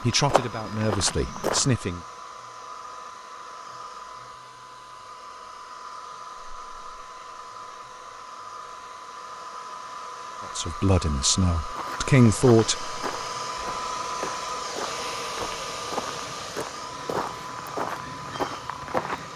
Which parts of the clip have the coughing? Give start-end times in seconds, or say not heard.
not heard.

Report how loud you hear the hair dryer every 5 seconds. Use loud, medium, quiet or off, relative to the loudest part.
medium, medium, loud, loud.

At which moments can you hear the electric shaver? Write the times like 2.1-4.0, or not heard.
not heard.